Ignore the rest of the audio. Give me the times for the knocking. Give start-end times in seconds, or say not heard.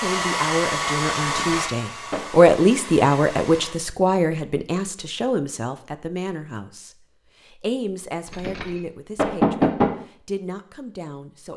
1.2-2.4, 8.2-9.9.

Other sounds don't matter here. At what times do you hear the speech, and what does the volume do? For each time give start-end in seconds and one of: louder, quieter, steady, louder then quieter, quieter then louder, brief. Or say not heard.
0.0-11.5 quieter.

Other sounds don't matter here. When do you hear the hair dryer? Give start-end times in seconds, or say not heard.
0.0-3.8.